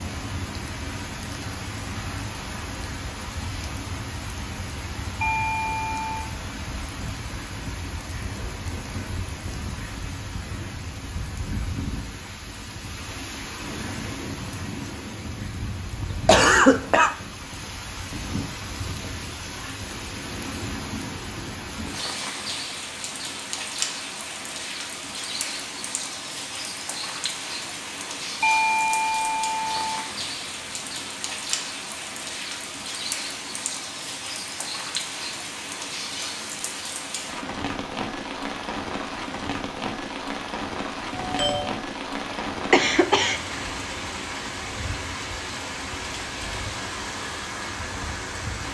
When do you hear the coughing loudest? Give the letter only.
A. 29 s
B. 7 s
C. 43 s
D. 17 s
D.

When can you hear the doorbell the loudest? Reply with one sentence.
The loudest moment of the doorbell is at 29 seconds.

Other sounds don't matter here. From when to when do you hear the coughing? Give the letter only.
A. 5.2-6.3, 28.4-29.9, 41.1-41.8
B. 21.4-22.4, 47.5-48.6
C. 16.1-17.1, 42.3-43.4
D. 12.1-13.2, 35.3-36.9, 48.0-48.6
C.